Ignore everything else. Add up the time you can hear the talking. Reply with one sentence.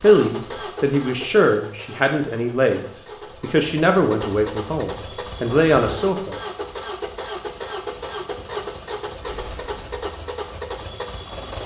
You can hear the talking for 6 seconds altogether.